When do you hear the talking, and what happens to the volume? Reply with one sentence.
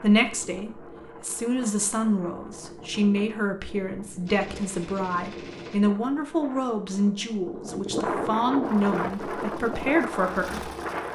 You can hear the talking from 0.0 to 10.7 s, at a steady volume.